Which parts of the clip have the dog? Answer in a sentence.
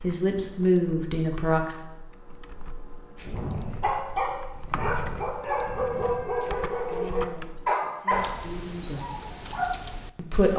The dog can be heard from 3.1 to 9.9 s.